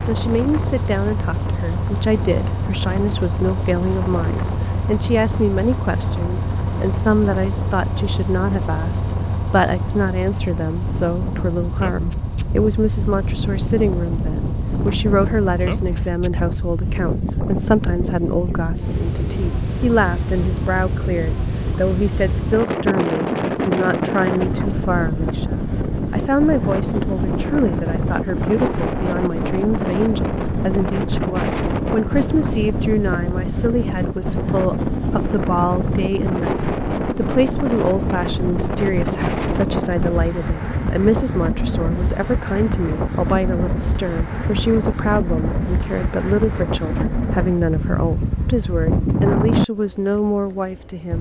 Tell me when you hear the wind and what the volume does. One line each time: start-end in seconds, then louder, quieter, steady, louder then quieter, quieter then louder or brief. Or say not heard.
0.0-51.1 louder.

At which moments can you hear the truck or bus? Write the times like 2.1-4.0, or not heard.
0.0-16.1.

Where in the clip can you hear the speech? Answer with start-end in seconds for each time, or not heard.
0.0-51.1.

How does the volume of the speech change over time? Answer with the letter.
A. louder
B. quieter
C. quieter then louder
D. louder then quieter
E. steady
E.